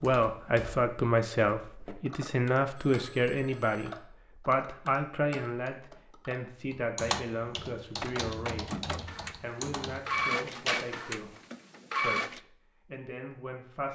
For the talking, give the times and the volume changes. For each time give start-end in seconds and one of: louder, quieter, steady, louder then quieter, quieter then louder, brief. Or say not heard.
0.0-8.7 quieter
9.4-11.3 brief
12.0-13.9 brief.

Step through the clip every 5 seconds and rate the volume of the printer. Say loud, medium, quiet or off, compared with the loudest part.
off, medium, loud.